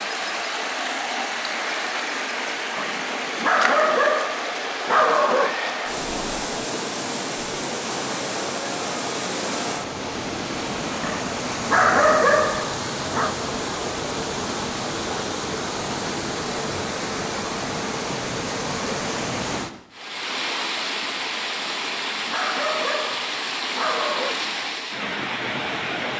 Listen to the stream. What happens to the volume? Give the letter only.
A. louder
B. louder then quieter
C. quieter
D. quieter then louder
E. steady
E.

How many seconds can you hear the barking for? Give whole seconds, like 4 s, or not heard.
8 s.